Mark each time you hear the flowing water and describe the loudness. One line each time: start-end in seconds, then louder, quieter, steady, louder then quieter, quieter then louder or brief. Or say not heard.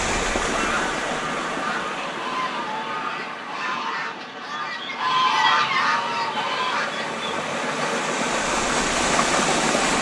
0.0-9.9 quieter then louder.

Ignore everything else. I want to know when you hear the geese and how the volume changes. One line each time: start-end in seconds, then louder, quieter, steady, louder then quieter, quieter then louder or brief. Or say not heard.
0.5-8.0 louder then quieter.